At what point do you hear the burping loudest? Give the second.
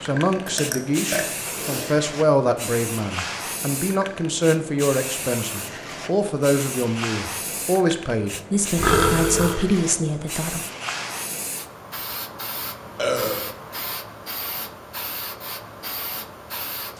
9 s.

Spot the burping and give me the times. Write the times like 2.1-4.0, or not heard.
0.5-1.9, 8.8-9.6, 12.9-13.5.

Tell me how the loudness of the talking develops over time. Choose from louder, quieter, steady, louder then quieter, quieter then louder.
steady.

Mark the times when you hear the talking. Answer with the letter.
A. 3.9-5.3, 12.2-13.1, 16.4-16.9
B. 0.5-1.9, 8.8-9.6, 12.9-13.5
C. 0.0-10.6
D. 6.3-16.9
C.